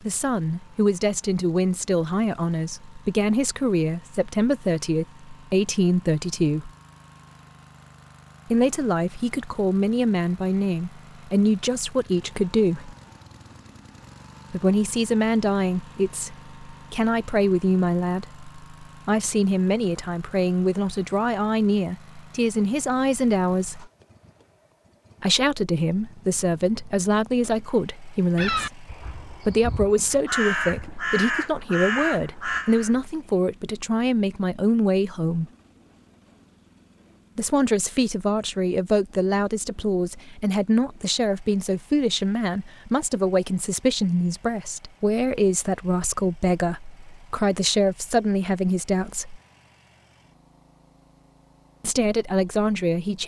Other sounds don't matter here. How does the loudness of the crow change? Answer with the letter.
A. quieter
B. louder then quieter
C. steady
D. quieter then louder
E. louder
E.